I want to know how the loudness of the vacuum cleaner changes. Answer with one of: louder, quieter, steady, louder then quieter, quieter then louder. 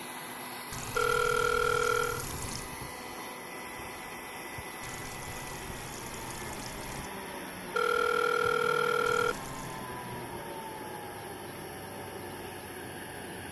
steady.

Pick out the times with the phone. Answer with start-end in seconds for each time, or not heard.
0.9-2.2, 7.7-9.3.